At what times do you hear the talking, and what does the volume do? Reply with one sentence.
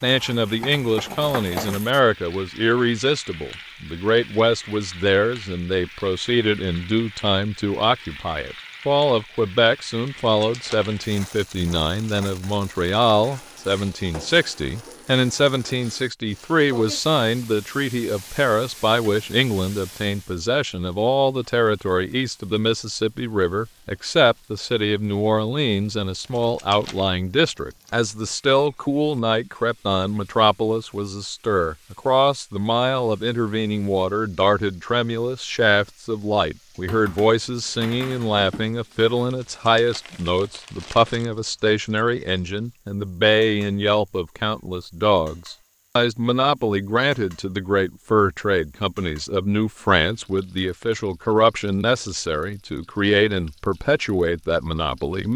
The talking can be heard from 0.0 to 55.3 s, at a steady volume.